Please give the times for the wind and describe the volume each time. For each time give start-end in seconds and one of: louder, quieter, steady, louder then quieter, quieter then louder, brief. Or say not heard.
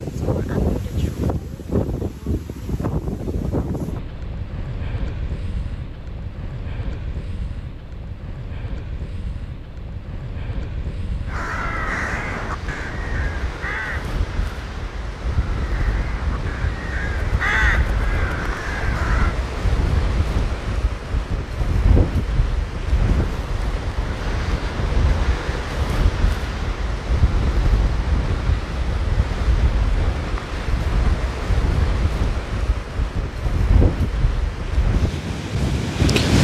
0.0-36.3 quieter then louder.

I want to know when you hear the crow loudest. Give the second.
18 s.